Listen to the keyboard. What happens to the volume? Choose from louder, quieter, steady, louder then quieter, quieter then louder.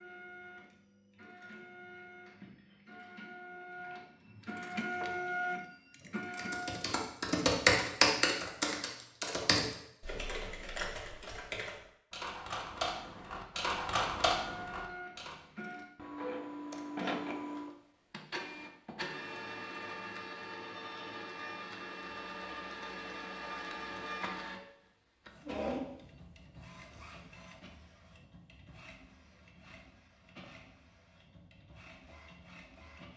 quieter then louder.